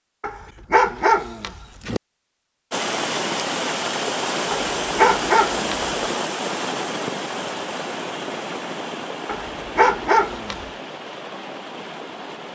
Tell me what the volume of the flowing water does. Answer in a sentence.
The volume of the flowing water goes down.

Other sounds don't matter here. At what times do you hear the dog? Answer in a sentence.
You can hear the dog from 0.2 to 2.0 s, from 4.5 to 5.8 s and from 9.2 to 10.7 s.